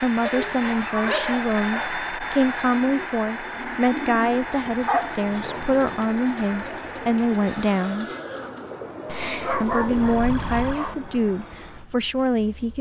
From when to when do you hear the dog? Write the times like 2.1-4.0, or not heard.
0.2-2.0, 4.3-5.8, 9.1-10.9.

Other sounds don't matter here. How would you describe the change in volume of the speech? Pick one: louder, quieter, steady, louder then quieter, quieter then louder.
steady.